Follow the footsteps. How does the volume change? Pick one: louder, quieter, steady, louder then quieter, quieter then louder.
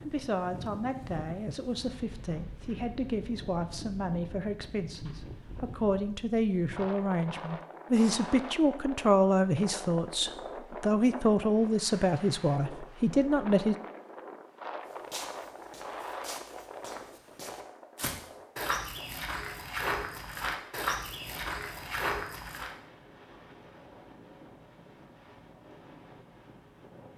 louder.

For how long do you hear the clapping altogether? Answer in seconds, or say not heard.
not heard.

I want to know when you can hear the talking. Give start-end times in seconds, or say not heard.
0.1-13.8.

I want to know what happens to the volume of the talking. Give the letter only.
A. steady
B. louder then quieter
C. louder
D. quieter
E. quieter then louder
C.